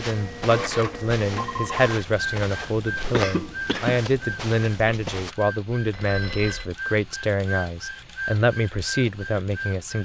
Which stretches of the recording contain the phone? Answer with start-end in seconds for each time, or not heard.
1.4-1.8, 5.9-6.7.